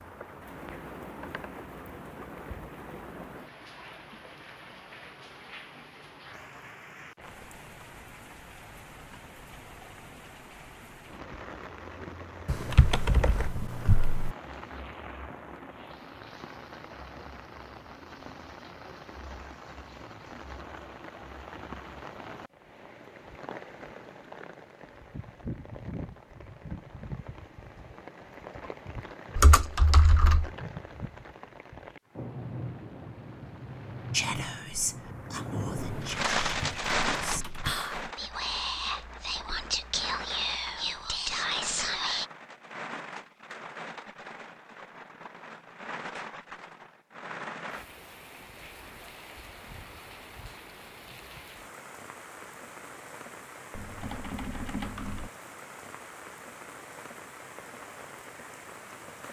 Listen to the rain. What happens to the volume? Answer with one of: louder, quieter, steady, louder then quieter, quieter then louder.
louder then quieter.